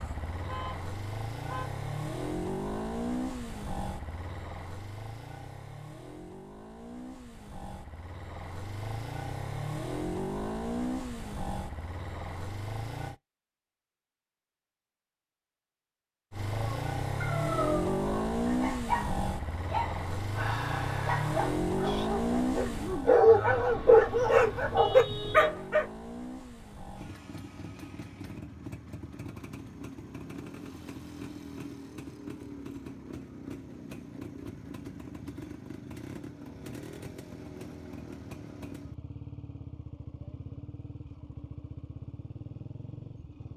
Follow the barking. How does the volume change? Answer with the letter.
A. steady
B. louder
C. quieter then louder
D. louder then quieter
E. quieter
B.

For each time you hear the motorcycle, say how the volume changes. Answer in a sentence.
You can hear the motorcycle from 0.0 to 13.2 s, getting quieter then louder; and from 16.3 to 43.5 s, getting quieter.